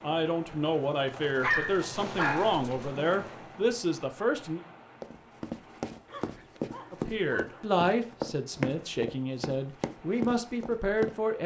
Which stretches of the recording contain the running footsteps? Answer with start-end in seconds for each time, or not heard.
5.0-11.4.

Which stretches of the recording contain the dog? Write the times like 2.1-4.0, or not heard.
1.4-3.0, 6.0-7.7.